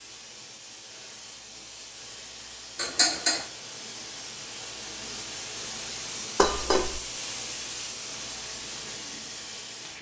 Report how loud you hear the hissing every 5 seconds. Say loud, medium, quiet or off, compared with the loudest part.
medium, loud.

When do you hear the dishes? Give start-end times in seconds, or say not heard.
2.8-3.5, 6.3-7.0.